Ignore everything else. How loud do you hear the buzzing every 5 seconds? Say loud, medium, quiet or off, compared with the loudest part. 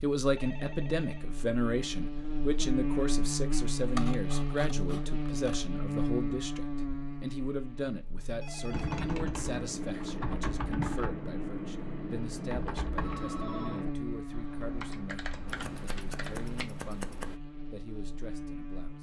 loud, loud, medium, medium.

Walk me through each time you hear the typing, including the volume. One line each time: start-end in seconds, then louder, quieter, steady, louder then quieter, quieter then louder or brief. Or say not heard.
8.7-16.6 quieter.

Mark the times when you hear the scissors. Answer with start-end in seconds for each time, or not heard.
3.8-5.7, 15.4-17.4.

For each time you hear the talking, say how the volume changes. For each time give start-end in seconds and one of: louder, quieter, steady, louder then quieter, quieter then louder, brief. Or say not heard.
0.0-18.9 quieter.